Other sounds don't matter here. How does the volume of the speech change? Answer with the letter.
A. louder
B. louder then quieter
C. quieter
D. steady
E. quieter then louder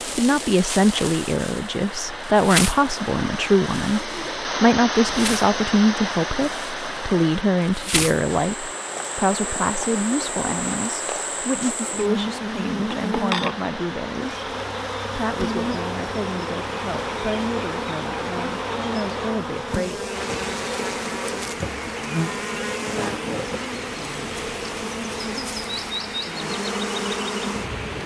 C.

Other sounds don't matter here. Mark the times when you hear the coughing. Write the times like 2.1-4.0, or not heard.
not heard.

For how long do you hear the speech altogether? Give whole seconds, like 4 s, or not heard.
19 s.